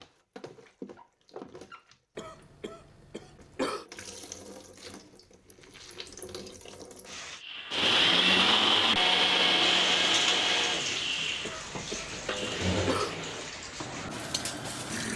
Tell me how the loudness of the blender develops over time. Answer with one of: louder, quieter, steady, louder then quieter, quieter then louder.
quieter.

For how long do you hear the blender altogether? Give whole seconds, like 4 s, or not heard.
8 s.